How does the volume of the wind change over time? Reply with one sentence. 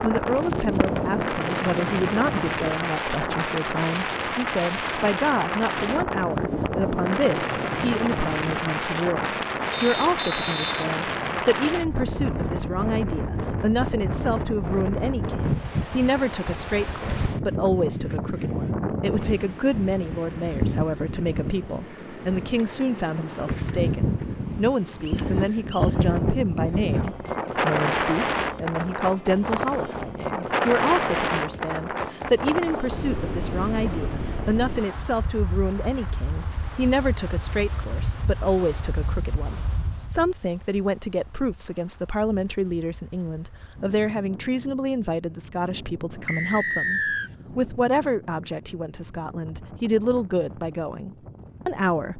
The volume of the wind goes down.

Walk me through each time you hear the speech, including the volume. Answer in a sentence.
You can hear the speech from 0.0 to 52.1 s, at a steady volume.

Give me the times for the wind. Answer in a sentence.
You can hear the wind from 0.0 to 52.1 s.